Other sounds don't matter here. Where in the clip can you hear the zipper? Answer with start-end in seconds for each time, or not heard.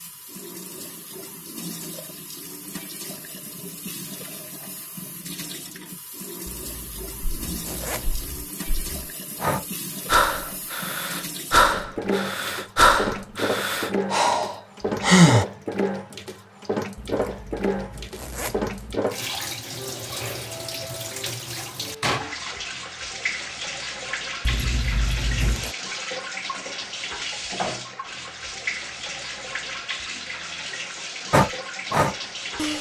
6.5-8.4, 16.9-18.9, 24.4-25.8.